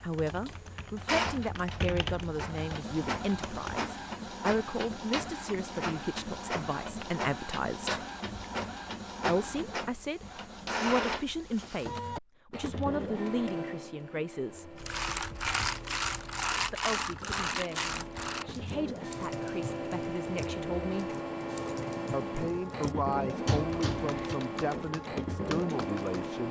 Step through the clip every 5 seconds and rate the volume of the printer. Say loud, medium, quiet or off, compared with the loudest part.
loud, loud, loud, medium, loud, loud.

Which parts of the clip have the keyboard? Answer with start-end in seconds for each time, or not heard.
0.0-3.9, 14.8-26.3.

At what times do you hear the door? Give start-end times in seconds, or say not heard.
23.4-24.4.